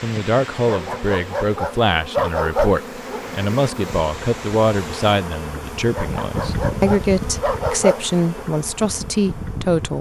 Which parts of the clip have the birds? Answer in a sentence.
The birds can't be heard in this clip.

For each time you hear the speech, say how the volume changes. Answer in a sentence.
You can hear the speech from 0.0 to 9.9 s, at a steady volume.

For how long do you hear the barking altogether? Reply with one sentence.
The barking can be heard for 5 seconds in total.